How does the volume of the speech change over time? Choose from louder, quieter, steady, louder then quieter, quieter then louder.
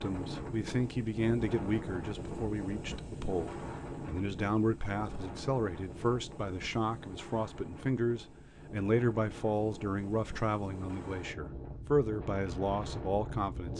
steady.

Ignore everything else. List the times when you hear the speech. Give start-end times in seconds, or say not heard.
0.0-13.7.